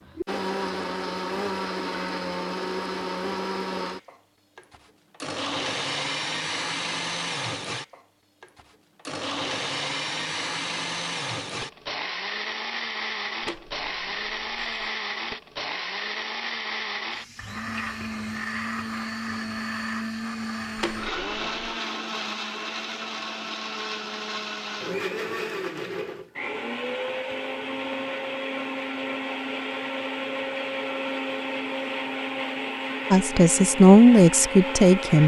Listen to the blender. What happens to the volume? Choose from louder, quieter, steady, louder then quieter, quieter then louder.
steady.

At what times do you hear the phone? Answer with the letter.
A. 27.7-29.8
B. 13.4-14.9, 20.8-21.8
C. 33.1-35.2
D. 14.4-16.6
B.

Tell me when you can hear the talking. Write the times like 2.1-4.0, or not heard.
33.1-35.2.